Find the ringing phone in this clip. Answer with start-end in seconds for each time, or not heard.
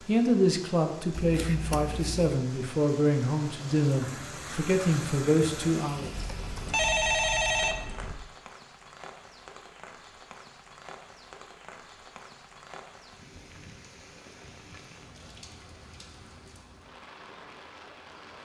6.2-8.2.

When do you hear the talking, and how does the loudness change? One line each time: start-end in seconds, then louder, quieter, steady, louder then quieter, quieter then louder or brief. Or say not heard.
0.1-6.1 steady.